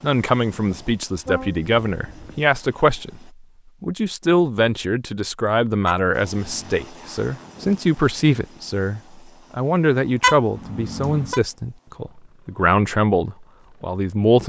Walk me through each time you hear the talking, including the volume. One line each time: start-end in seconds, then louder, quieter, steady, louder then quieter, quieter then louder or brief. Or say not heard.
0.0-14.4 steady.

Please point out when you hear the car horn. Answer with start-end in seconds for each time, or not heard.
1.2-2.4, 5.8-6.8, 10.2-11.4.